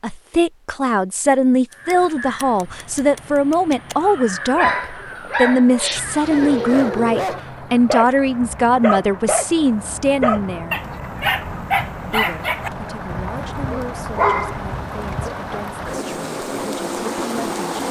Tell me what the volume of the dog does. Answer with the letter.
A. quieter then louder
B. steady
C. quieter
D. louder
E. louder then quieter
B.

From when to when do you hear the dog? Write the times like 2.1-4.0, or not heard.
4.5-15.5.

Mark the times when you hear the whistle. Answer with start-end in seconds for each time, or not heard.
not heard.